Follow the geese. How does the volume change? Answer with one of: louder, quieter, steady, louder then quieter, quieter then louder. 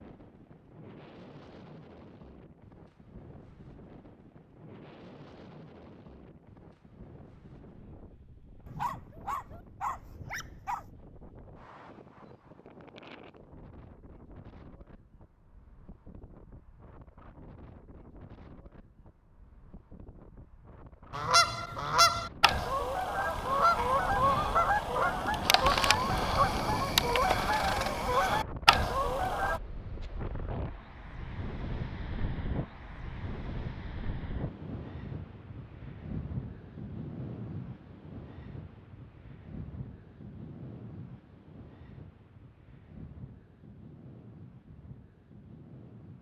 steady.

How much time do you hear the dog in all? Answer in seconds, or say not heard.
2 s.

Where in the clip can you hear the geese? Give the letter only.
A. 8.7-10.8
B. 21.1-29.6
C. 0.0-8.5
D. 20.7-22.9
B.